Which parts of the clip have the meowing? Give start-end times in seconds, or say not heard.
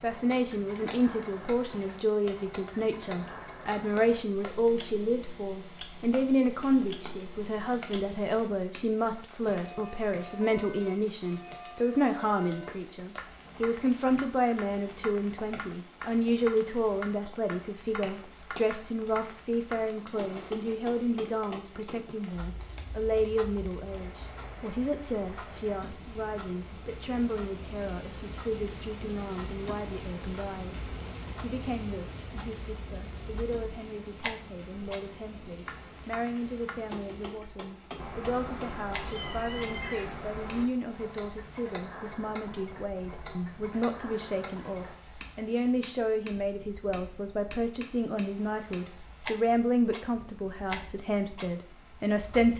38.0-40.7.